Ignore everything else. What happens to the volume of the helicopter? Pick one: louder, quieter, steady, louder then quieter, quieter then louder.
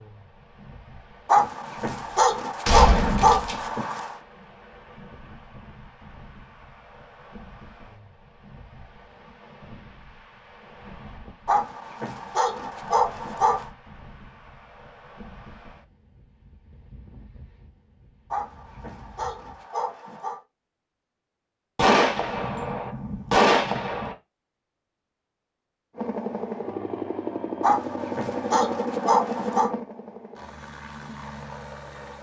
quieter.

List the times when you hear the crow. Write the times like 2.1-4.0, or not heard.
not heard.